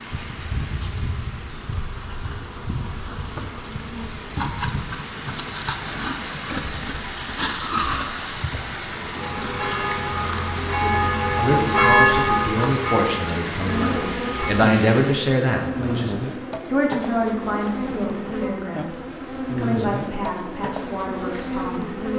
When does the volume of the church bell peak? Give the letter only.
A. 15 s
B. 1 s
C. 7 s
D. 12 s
D.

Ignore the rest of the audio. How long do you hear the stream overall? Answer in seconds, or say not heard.
15 s.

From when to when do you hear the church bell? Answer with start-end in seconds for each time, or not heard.
9.2-14.6.